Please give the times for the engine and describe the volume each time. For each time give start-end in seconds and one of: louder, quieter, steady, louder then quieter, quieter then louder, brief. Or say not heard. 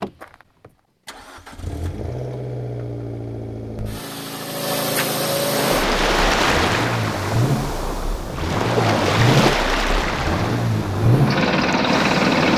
0.0-12.5 louder.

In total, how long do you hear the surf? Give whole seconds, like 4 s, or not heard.
7 s.